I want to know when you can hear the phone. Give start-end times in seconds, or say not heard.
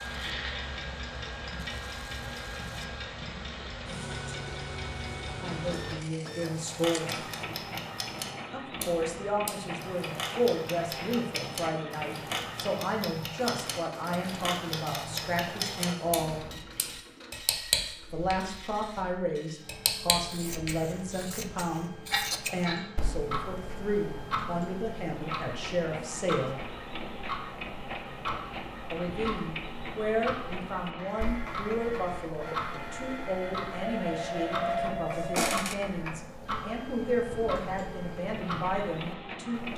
33.8-35.8.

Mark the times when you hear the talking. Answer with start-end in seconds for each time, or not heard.
5.4-7.2, 8.5-16.4, 18.1-26.7, 28.9-39.7.